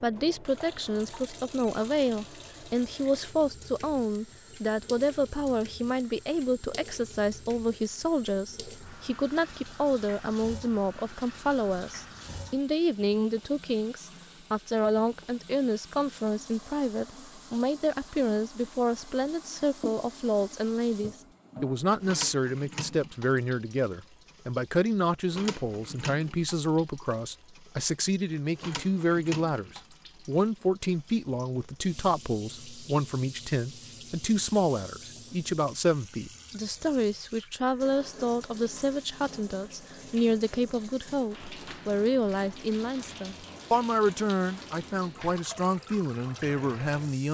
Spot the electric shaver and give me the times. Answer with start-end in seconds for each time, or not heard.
not heard.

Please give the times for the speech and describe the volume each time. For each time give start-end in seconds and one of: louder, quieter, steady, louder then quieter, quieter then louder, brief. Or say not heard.
0.0-47.3 steady.